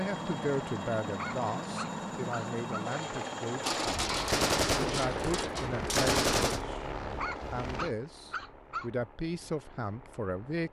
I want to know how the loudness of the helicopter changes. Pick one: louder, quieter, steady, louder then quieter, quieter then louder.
quieter.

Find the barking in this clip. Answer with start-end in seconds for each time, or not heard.
1.1-2.9, 7.2-8.9.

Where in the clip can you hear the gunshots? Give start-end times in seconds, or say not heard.
3.6-6.6.